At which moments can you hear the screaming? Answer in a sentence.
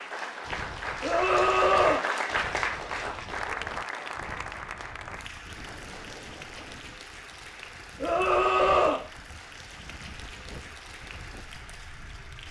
You can hear the screaming from 1.0 to 2.0 s and from 8.0 to 9.0 s.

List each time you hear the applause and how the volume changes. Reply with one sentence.
You can hear the applause from 0.0 to 12.4 s, getting quieter.